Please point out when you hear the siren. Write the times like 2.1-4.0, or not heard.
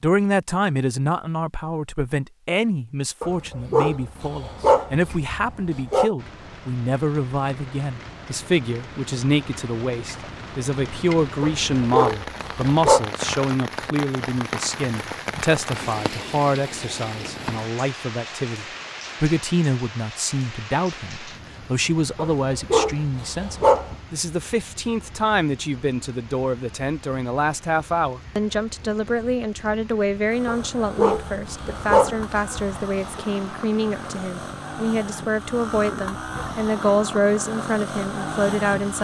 not heard.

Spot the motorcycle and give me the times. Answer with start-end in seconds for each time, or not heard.
30.3-38.9.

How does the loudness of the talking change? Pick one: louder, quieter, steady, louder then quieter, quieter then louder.
steady.